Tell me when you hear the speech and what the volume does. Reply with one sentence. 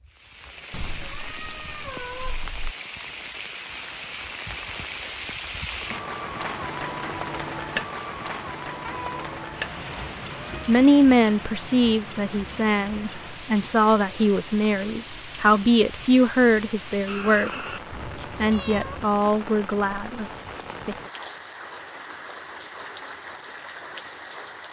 You can hear the speech from 10.7 to 20.2 s, at a steady volume.